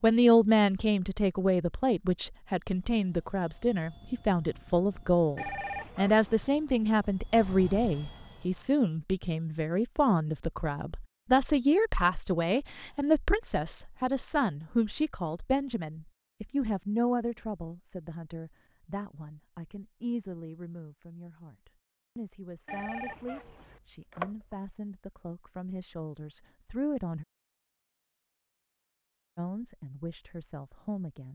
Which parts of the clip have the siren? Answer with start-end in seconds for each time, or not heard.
not heard.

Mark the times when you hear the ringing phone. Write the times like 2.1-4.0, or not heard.
5.3-6.6, 22.6-24.3.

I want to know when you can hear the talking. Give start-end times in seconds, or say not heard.
0.0-27.2, 29.4-31.3.